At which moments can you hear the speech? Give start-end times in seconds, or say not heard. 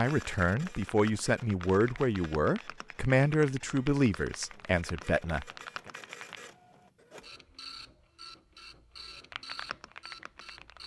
0.0-5.9.